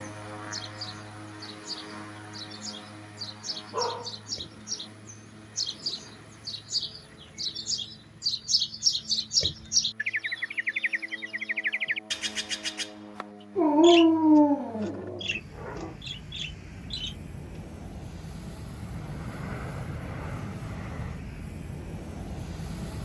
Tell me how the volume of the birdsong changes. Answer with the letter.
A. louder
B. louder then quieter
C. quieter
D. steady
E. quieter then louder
B.